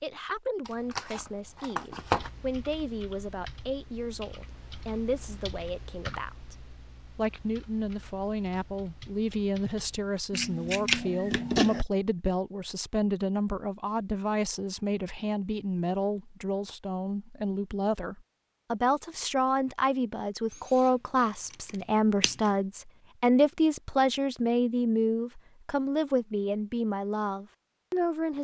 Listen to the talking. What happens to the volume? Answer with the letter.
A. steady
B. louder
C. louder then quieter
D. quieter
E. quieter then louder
B.